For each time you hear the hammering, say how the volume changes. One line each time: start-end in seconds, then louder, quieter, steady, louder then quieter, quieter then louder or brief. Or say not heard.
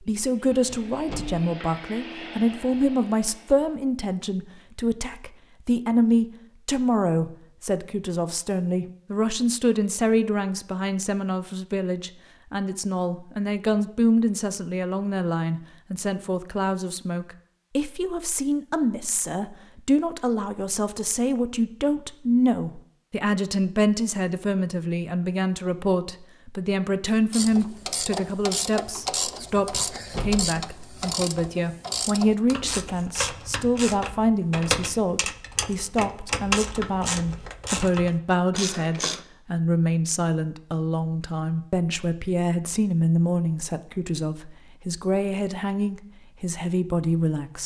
not heard.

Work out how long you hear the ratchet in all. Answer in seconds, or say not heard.
12 s.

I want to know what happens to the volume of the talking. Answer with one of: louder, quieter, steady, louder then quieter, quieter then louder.
steady.